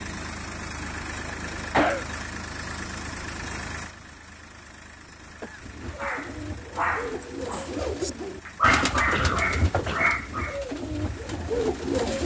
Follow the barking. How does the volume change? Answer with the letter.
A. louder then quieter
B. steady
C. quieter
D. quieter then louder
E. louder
D.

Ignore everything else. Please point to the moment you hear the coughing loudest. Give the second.
2 s.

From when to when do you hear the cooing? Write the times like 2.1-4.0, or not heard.
5.6-12.2.